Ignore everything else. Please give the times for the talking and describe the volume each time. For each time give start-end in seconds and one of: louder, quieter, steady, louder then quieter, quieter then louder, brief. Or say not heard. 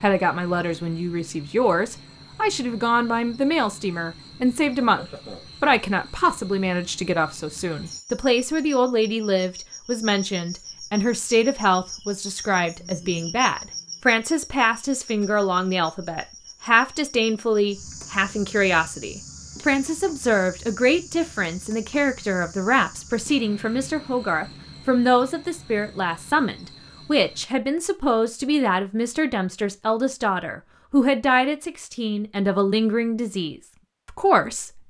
0.0-34.8 steady.